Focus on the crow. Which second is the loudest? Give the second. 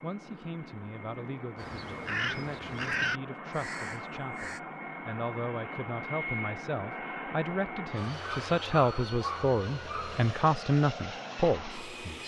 3 s.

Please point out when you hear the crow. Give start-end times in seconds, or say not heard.
1.6-4.6.